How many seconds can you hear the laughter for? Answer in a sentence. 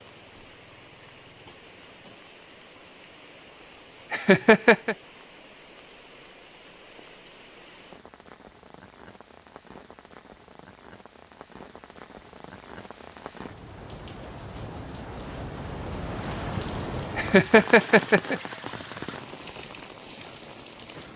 You can hear the laughter for 2 seconds altogether.